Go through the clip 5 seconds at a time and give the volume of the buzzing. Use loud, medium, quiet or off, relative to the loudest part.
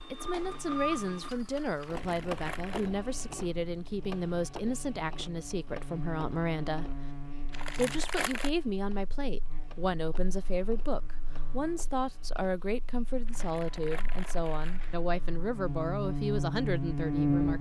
quiet, quiet, quiet, loud.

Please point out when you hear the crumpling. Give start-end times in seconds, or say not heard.
1.8-3.0, 7.5-8.5, 13.2-14.9.